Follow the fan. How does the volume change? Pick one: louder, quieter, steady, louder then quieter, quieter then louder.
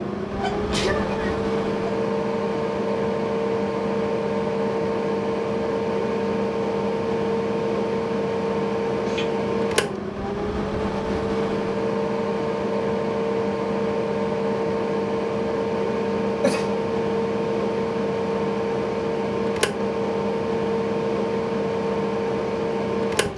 steady.